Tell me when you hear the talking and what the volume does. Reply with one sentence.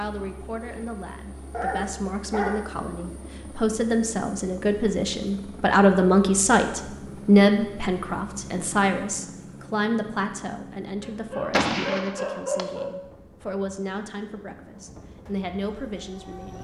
The talking can be heard from 0.0 to 16.6 s, getting louder then quieter.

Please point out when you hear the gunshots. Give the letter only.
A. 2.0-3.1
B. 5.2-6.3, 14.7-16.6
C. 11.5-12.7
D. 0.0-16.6
C.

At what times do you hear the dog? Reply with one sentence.
You can hear the dog from 1.5 to 2.7 s and from 11.0 to 12.9 s.